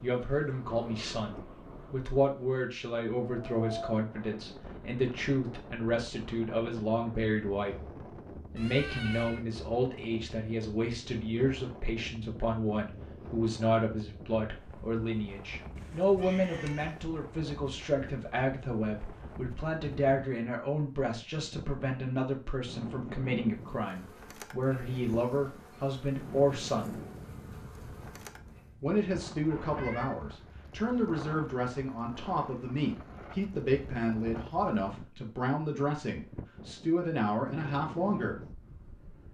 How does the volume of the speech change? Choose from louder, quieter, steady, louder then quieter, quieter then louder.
steady.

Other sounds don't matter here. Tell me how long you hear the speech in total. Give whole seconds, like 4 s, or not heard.
36 s.